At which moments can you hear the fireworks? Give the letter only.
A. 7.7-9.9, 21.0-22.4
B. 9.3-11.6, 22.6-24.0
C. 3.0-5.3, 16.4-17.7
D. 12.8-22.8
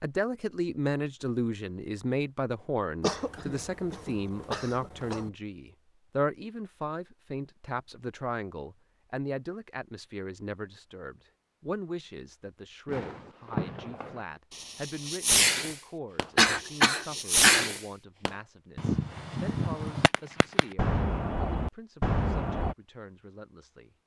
D.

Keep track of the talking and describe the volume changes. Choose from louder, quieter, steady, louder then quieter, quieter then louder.
quieter.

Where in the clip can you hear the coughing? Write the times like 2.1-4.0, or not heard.
3.0-5.3, 16.4-17.7.